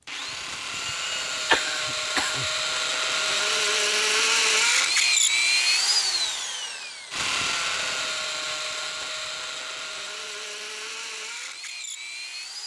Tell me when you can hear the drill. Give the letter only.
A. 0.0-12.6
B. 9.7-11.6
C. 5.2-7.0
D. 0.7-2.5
A.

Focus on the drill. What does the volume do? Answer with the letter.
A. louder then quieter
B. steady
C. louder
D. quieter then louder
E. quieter
A.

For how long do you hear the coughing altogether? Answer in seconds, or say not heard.
2 s.